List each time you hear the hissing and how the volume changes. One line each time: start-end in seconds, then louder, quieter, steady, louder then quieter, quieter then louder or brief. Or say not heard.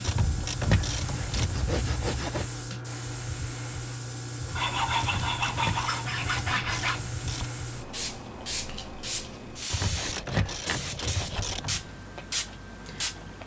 0.0-13.4 steady.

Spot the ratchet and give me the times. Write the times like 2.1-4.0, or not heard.
0.0-1.6, 5.0-7.5, 9.7-11.8.